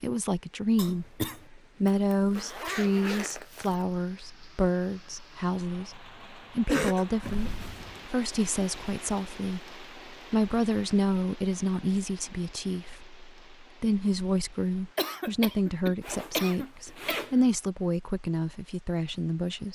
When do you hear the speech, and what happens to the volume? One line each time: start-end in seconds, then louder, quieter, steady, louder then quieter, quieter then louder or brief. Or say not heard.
0.0-19.6 steady.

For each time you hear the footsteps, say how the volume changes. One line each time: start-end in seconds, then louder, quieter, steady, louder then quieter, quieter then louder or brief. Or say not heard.
not heard.